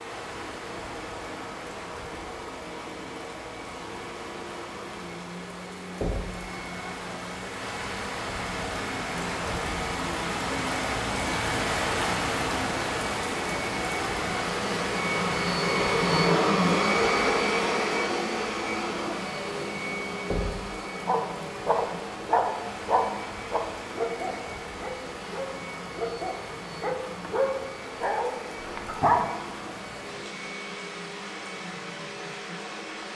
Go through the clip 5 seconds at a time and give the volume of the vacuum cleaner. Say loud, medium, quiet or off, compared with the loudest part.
quiet, quiet, medium, loud, quiet, quiet, quiet.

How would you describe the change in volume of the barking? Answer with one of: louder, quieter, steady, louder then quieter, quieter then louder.
quieter then louder.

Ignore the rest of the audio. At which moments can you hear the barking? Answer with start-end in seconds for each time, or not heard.
21.1-29.2.